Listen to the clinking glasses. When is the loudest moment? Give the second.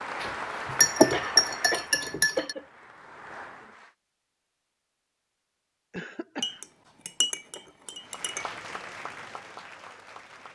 1 s.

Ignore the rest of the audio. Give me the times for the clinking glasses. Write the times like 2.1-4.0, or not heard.
0.2-2.5, 6.4-8.5.